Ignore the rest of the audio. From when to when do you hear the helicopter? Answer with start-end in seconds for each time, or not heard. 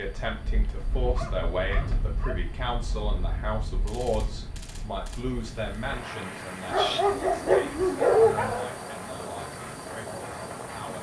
not heard.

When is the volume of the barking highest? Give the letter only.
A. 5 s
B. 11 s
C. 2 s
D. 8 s
D.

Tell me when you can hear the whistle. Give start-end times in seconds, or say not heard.
not heard.